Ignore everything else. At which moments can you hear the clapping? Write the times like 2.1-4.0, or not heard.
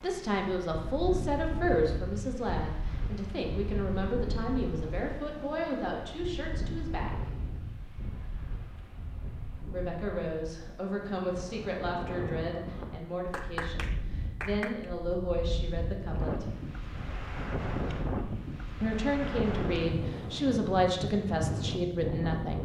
13.2-14.9.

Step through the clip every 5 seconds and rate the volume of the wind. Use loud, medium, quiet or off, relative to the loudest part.
medium, medium, medium, loud, loud.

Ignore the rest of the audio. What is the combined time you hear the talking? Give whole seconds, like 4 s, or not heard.
18 s.